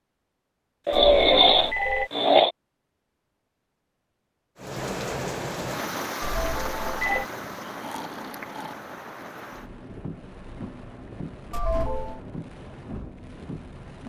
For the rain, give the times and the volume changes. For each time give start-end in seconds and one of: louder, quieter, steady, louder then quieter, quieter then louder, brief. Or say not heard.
4.5-14.0 quieter.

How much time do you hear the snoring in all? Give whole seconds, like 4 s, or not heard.
3 s.